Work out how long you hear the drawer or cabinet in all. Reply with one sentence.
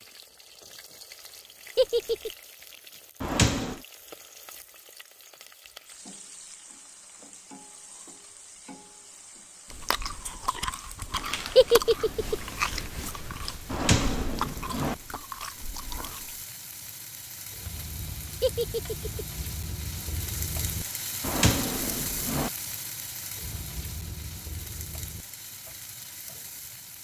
You can hear the drawer or cabinet for 3 seconds altogether.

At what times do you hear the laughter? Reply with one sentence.
The laughter can be heard from 1.8 to 2.3 s, from 11.6 to 12.3 s and from 18.4 to 19.2 s.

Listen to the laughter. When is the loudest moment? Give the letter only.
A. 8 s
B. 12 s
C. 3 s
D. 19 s
B.